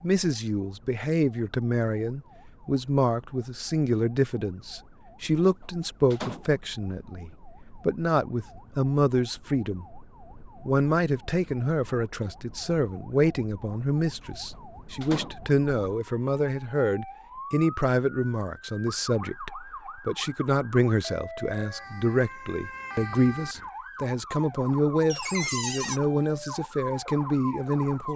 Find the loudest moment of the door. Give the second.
26 s.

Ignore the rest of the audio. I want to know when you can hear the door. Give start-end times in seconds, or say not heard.
5.6-6.5, 14.5-15.3, 25.1-26.0.